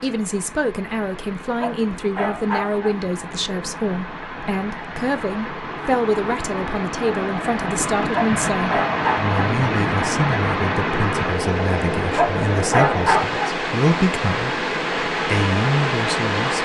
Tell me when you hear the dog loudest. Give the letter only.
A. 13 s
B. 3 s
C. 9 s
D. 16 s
A.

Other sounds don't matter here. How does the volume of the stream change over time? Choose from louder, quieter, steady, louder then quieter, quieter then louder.
louder.